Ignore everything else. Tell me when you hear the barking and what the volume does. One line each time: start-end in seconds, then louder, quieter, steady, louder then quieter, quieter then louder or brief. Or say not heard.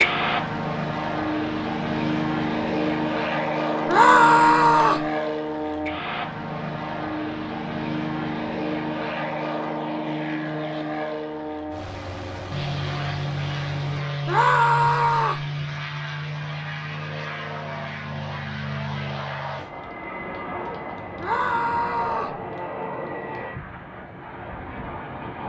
not heard.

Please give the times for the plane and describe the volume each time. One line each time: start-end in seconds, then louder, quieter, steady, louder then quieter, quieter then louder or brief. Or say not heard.
0.0-25.4 quieter.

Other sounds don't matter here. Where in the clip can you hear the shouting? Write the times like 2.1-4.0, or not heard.
3.9-5.0, 14.2-15.4, 21.2-22.4.